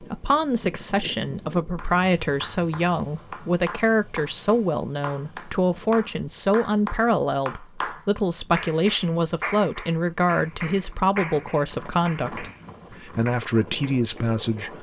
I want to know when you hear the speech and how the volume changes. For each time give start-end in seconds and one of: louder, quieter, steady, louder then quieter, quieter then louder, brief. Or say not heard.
0.0-14.7 steady.